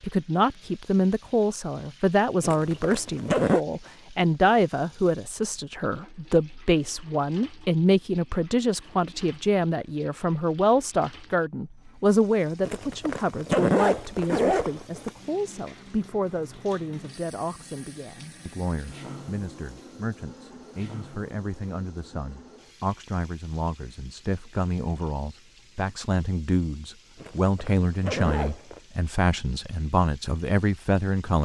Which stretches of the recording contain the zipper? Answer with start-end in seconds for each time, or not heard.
2.4-3.6, 12.7-15.1, 27.1-28.8.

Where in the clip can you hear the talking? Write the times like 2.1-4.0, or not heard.
0.0-31.4.